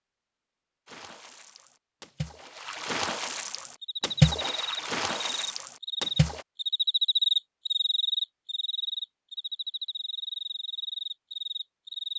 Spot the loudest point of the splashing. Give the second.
4 s.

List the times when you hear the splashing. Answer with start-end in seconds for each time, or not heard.
0.8-6.5.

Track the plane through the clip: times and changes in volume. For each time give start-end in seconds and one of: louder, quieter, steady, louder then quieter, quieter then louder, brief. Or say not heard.
not heard.